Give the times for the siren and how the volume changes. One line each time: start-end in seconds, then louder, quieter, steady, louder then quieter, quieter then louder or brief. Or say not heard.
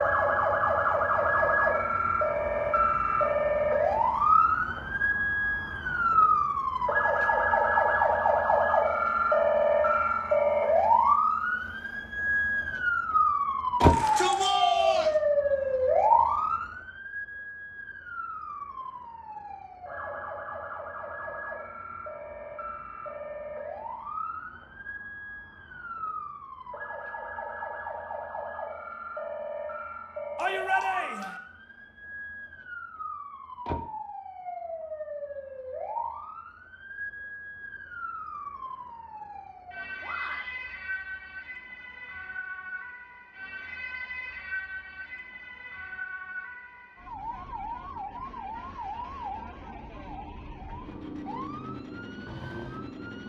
0.0-53.2 quieter.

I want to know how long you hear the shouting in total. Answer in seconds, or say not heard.
3 s.